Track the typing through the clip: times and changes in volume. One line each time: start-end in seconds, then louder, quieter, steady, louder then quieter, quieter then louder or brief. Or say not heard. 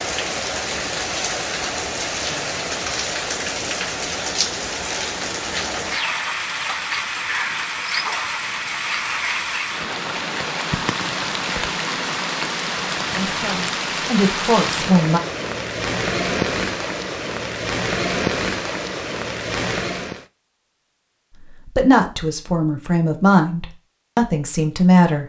not heard.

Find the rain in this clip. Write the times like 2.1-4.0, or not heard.
0.0-20.2.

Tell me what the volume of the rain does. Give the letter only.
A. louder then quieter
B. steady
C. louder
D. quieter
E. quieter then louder
B.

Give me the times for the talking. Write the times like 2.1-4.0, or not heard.
13.2-15.2, 21.5-25.2.